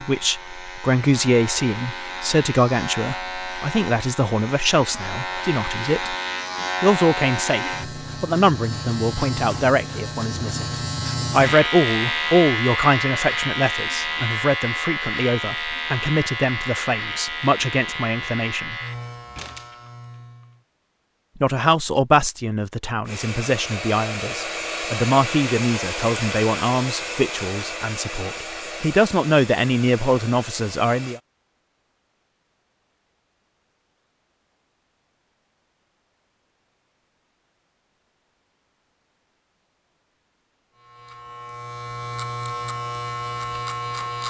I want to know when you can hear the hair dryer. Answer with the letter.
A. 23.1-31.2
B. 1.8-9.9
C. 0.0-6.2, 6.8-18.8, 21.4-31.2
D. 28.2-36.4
A.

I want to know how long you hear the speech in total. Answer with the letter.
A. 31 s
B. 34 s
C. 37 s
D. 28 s
D.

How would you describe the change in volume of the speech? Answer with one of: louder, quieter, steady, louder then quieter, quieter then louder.
steady.